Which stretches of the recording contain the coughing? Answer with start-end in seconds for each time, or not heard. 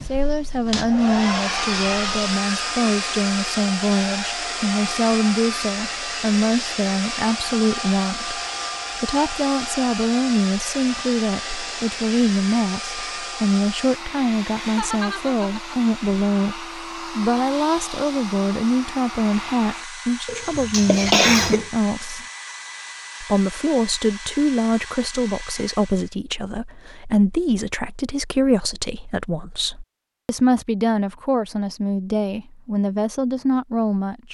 20.2-21.7.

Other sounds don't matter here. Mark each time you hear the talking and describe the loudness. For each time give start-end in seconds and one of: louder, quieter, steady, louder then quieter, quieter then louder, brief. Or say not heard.
0.1-22.2 steady
23.2-34.2 steady.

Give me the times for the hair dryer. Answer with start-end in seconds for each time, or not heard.
0.0-26.1.